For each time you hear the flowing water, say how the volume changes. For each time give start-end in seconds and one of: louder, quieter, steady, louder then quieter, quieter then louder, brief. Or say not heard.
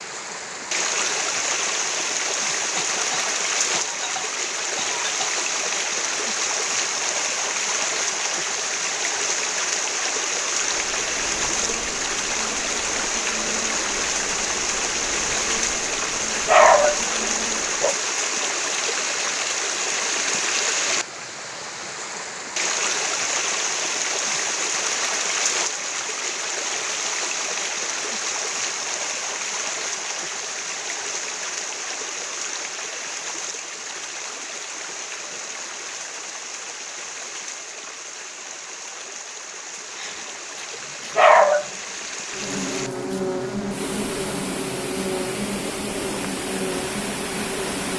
0.0-47.9 quieter.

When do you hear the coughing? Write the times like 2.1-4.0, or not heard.
2.8-5.3.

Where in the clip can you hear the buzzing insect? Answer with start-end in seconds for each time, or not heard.
10.6-17.9, 42.3-47.9.